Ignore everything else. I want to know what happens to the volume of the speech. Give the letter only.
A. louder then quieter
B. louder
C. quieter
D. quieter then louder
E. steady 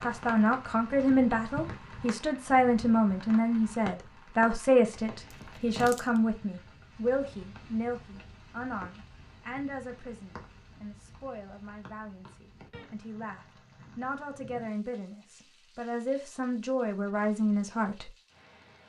D.